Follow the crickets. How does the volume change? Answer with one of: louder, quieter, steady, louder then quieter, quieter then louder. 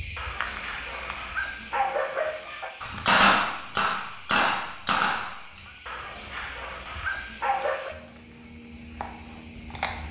quieter.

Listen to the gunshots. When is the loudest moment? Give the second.
3 s.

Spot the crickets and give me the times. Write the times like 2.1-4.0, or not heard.
0.0-10.0.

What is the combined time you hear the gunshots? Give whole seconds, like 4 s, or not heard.
3 s.